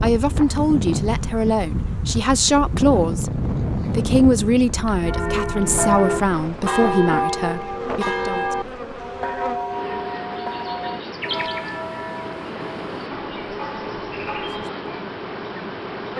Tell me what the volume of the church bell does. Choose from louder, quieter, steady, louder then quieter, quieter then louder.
quieter.